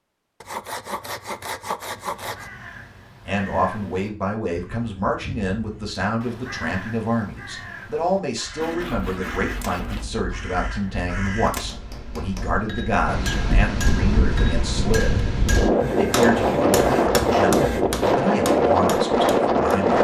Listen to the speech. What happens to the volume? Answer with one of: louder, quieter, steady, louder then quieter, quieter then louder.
steady.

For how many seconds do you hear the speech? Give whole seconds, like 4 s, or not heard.
16 s.